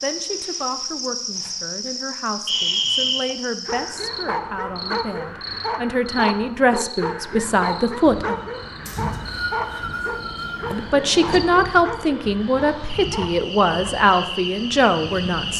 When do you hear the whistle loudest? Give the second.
3 s.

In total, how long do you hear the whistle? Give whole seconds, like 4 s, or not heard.
3 s.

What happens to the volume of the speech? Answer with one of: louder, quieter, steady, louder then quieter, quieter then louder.
louder.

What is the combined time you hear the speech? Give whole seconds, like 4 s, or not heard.
13 s.